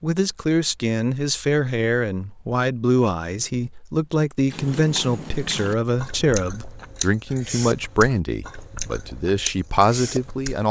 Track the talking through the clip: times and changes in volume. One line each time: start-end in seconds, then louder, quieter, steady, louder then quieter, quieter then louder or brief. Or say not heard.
0.0-10.6 steady.